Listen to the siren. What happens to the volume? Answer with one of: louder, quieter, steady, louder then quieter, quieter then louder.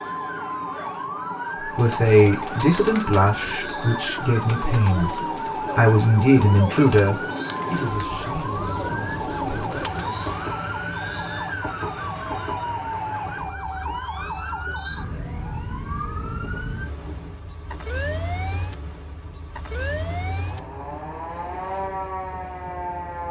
steady.